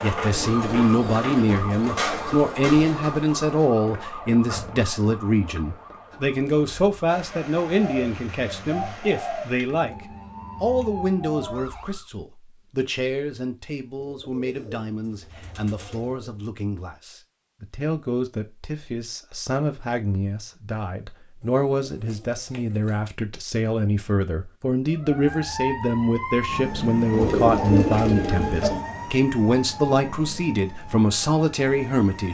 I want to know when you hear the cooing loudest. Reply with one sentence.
The volume of the cooing peaks at 28 seconds.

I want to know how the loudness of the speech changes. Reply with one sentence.
The volume of the speech goes down, then up.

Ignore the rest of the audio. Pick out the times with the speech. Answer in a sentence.
The speech can be heard from 0.0 to 9.9 s and from 10.6 to 32.2 s.